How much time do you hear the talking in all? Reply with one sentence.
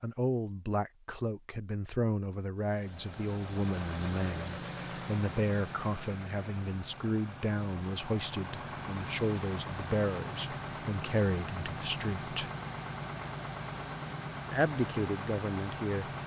You can hear the talking for 14 seconds altogether.